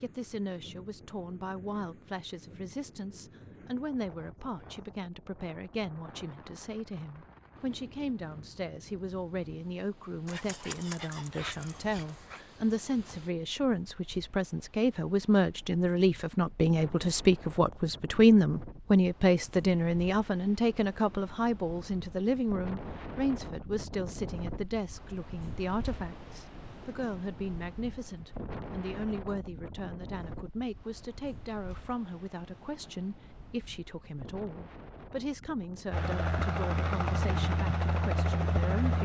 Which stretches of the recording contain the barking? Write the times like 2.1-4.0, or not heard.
10.2-12.4.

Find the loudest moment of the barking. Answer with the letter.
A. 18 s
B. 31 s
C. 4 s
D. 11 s
D.